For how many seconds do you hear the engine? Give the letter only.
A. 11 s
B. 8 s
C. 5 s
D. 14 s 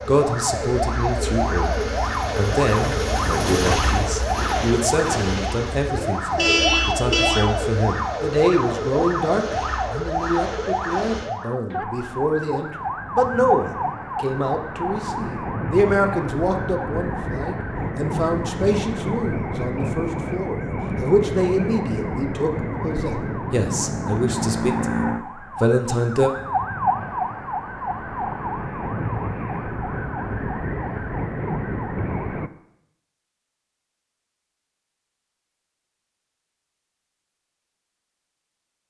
A.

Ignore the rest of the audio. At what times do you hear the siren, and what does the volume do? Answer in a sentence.
You can hear the siren from 0.0 to 32.5 s, at a steady volume.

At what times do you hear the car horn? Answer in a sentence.
The car horn can be heard from 6.2 to 7.5 s.